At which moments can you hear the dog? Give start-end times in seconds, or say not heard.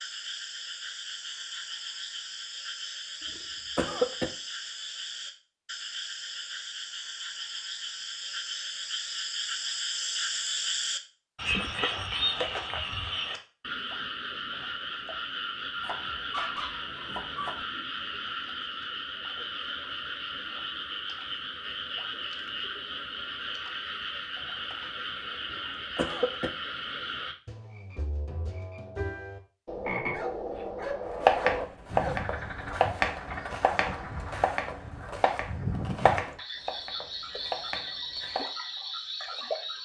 15.8-17.6, 30.1-32.1.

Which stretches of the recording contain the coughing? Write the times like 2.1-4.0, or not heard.
3.2-4.3, 25.4-26.5.